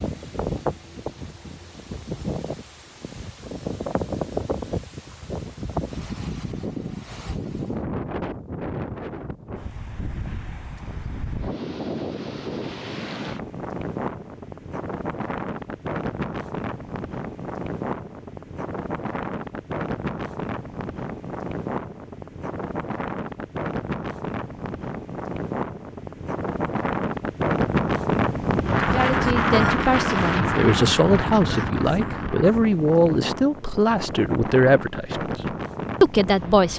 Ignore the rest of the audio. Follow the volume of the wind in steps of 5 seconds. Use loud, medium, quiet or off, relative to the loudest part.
medium, medium, medium, medium, medium, loud, loud, medium.